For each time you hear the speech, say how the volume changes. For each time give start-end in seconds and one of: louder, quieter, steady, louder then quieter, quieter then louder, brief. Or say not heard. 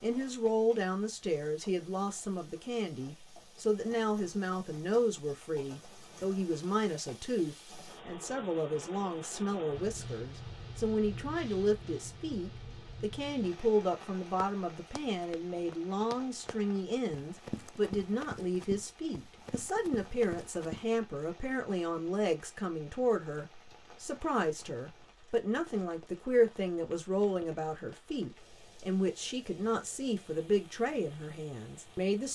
0.0-32.3 steady.